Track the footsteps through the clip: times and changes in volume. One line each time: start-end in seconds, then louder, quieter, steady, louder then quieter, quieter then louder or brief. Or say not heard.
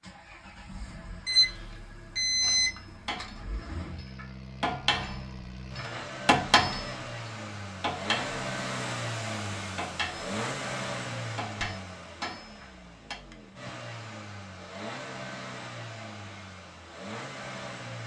not heard.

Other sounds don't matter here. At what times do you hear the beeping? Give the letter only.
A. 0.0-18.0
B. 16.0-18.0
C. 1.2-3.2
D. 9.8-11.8
C.